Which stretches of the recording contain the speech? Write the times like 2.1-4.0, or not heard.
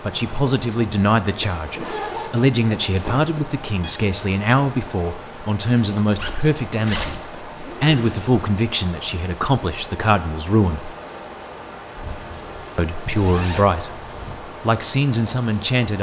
0.0-10.9, 12.8-15.9.